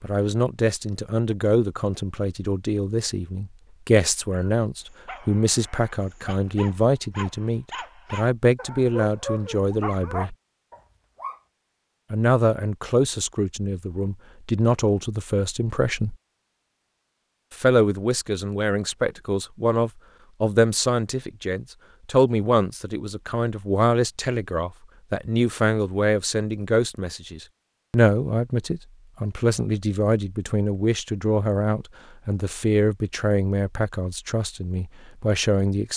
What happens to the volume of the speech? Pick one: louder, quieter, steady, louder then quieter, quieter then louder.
steady.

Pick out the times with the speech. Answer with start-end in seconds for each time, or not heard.
0.0-10.3, 12.1-16.1, 17.5-35.9.